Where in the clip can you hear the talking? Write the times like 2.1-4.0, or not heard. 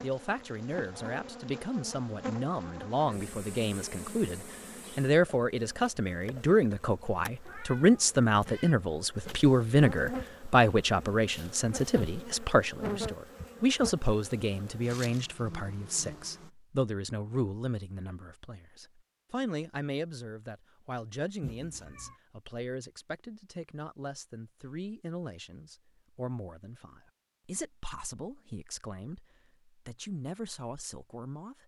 0.0-31.6.